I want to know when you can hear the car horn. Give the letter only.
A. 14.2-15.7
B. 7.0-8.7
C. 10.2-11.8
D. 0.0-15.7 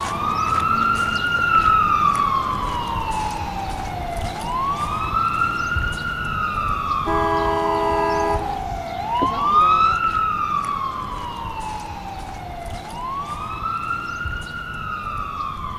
B.